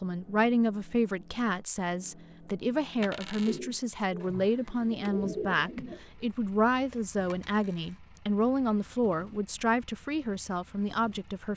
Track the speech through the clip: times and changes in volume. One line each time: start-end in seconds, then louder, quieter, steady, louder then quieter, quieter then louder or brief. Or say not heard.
0.0-11.5 steady.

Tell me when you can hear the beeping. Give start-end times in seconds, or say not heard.
not heard.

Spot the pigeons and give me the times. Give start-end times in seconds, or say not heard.
3.5-6.1.